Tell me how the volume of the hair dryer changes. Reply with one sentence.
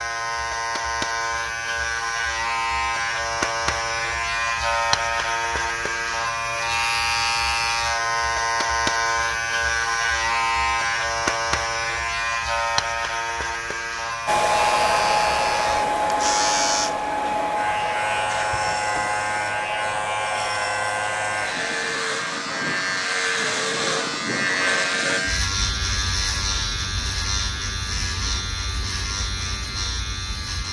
The loudness of the hair dryer goes down.